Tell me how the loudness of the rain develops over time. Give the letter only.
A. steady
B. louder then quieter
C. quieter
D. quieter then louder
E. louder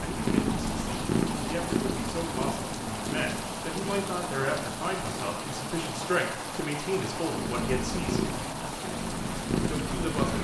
A.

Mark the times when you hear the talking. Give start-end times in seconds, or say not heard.
0.0-8.3, 9.7-10.3.